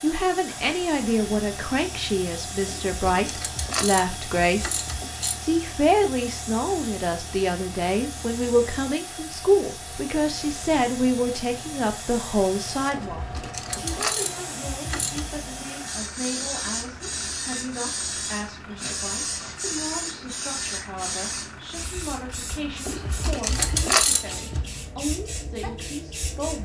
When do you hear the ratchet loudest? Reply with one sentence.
The loudest moment of the ratchet is at 24 seconds.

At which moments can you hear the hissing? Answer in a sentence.
The hissing can be heard from 0.0 to 26.6 s.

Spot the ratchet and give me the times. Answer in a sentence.
You can hear the ratchet from 2.6 to 5.4 s, from 12.9 to 15.3 s and from 22.9 to 24.6 s.